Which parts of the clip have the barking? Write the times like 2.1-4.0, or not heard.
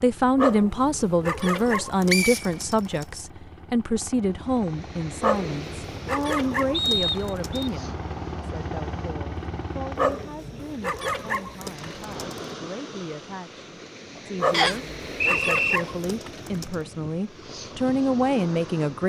0.3-3.0, 5.2-7.7, 9.9-12.4, 14.4-16.8.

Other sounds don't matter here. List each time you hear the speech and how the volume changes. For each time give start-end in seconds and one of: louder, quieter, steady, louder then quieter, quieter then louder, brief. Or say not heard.
0.0-19.0 quieter then louder.